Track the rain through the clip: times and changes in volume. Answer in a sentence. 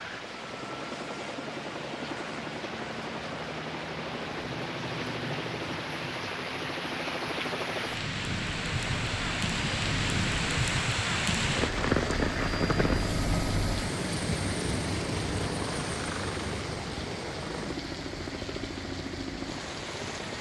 You can hear the rain from 0.0 to 20.3 s, getting louder then quieter.